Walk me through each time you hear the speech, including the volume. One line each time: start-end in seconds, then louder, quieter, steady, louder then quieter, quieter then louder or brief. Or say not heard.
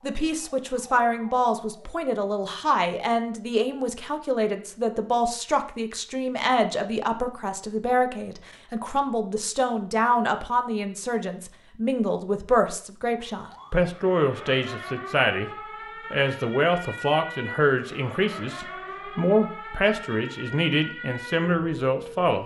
0.0-15.5 steady
16.1-22.4 steady.